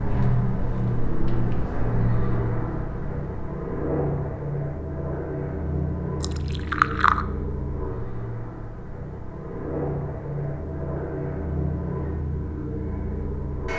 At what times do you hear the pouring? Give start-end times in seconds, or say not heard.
6.2-7.2.